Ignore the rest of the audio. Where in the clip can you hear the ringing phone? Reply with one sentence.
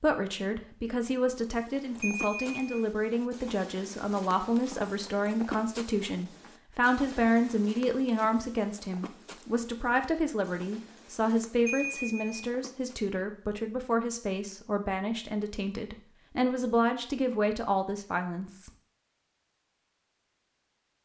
The ringing phone can be heard from 2.0 to 2.9 s and from 11.7 to 12.2 s.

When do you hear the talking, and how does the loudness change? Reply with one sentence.
The talking can be heard from 0.0 to 18.7 s, at a steady volume.